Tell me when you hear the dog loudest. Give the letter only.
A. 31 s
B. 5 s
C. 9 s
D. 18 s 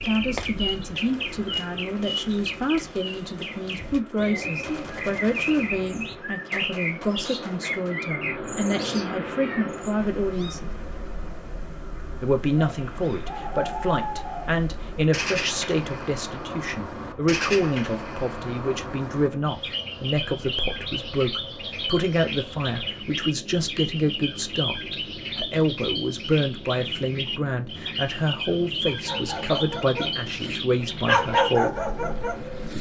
A.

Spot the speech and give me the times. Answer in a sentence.
The speech can be heard from 0.0 to 10.7 s and from 12.2 to 31.8 s.